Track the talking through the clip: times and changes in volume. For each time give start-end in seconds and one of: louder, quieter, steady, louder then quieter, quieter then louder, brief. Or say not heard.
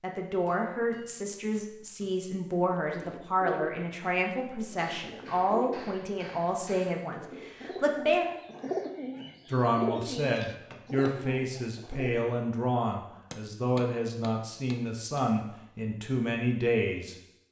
0.0-8.2 steady
9.5-17.1 steady.